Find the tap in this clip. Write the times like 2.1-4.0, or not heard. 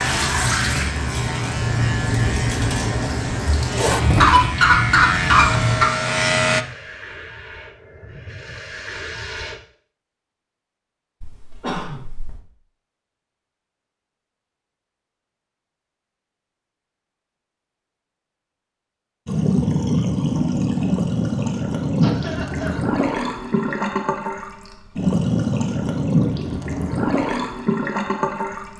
0.0-9.6, 19.2-28.7.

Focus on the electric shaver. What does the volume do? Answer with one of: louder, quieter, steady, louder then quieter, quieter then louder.
louder.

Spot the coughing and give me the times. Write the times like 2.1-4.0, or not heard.
4.2-5.8, 11.2-12.4, 22.0-22.8.